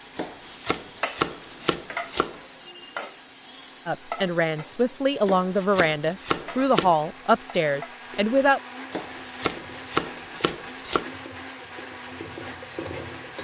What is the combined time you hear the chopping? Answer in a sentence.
The chopping can be heard for 6 seconds in total.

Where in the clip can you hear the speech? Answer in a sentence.
The speech can be heard from 3.9 to 8.6 s.